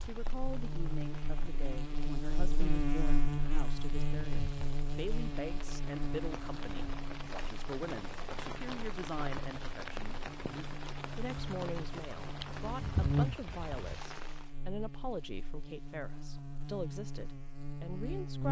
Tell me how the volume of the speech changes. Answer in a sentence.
The volume of the speech stays about the same.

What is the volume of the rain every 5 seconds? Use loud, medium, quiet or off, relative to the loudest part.
medium, loud, loud, off.